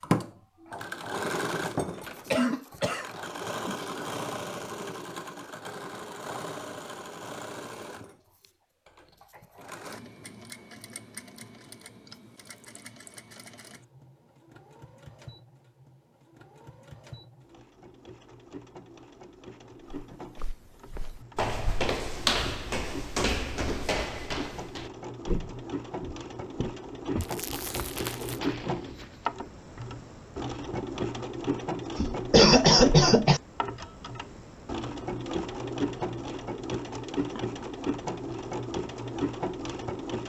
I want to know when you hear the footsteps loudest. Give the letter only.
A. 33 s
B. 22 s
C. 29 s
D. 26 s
B.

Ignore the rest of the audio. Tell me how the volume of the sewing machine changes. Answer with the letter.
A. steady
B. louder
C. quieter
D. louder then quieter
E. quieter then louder
E.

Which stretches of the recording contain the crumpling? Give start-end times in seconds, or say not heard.
27.2-28.4.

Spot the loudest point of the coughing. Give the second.
33 s.